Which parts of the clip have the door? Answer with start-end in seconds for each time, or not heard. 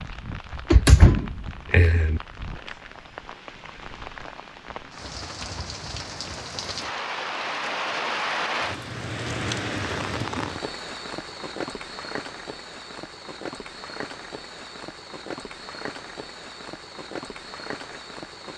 0.7-2.2.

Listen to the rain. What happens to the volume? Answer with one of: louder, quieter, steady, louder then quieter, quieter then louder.
louder then quieter.